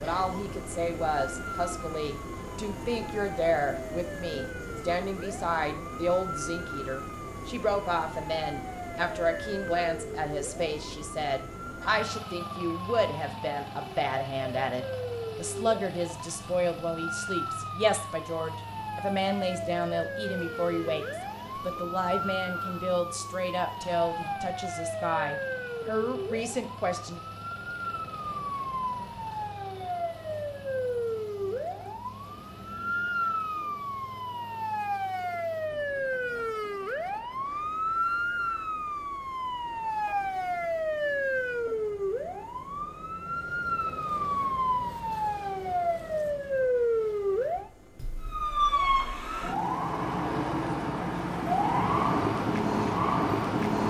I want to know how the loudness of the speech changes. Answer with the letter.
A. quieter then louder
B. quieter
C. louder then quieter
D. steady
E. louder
D.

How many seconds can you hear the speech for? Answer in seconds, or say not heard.
27 s.